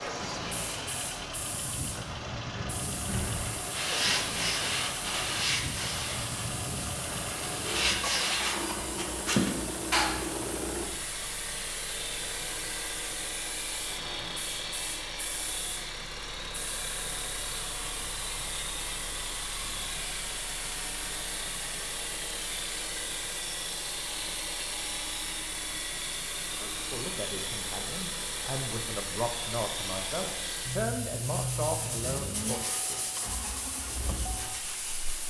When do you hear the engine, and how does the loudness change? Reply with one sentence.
You can hear the engine from 0.0 to 35.2 s, at a steady volume.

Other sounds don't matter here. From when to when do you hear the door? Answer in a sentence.
You can hear the door from 2.5 to 3.6 s.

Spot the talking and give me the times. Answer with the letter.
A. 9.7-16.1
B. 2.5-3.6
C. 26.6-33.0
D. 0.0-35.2
C.